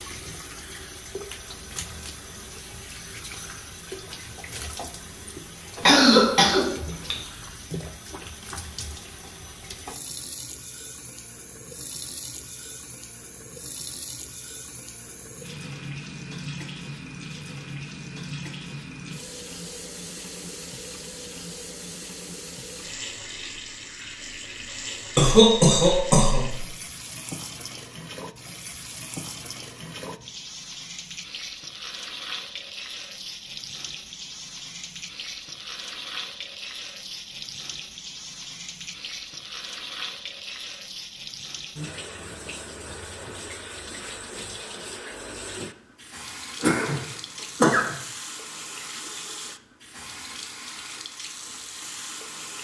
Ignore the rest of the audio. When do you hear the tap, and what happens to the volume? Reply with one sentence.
The tap can be heard from 0.0 to 52.6 s, at a steady volume.